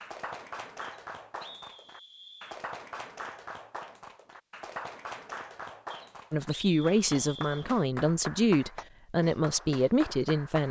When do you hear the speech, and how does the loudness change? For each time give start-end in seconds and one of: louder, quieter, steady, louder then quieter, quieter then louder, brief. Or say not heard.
6.3-10.6 steady.